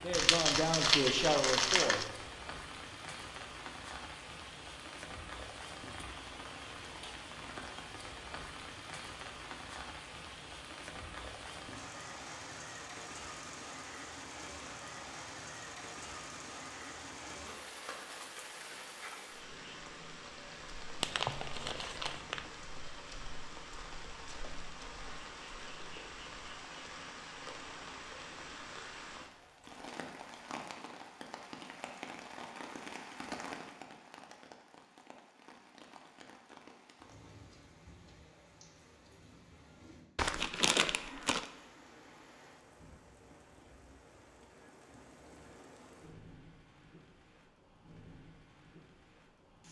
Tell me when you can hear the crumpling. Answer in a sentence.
The crumpling can be heard from 0.1 to 2.1 s, from 21.0 to 22.5 s and from 40.1 to 41.5 s.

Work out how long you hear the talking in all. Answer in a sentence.
You can hear the talking for 2 seconds altogether.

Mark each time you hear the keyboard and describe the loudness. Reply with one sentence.
You can't hear the keyboard here.